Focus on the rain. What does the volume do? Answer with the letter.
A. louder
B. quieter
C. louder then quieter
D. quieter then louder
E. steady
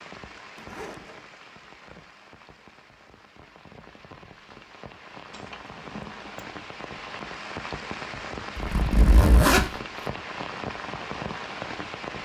A.